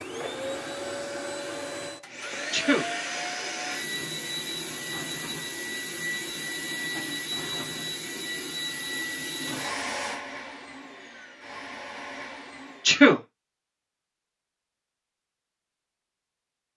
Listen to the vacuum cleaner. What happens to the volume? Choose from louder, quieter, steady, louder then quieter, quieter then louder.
quieter.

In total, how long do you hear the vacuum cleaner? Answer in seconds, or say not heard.
13 s.